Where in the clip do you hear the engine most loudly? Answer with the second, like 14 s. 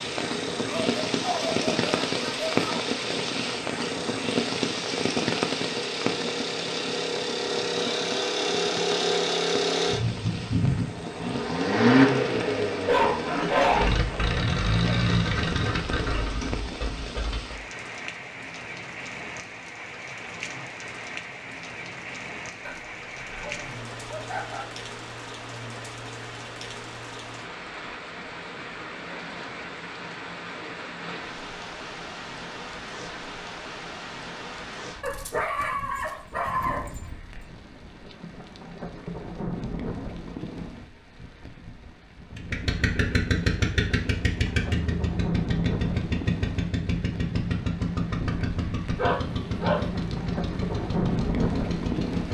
12 s.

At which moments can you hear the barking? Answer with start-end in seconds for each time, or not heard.
0.8-2.9, 12.8-14.9, 22.6-24.6, 35.0-37.0, 49.0-49.9.